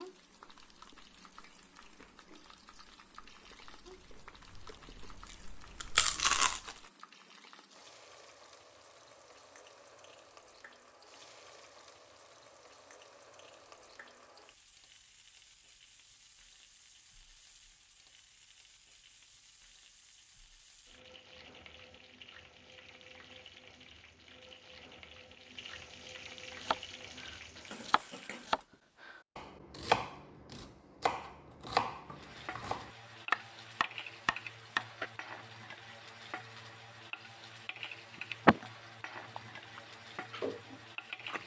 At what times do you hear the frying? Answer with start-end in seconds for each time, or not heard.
0.0-28.6, 32.0-41.4.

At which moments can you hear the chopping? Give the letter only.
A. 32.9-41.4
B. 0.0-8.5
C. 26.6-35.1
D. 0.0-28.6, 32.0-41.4
C.